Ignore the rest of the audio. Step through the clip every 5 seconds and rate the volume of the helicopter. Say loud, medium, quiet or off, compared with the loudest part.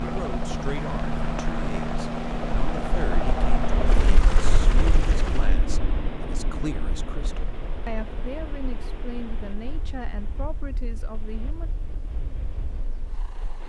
loud, medium, quiet.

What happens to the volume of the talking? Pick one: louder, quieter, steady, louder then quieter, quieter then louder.
steady.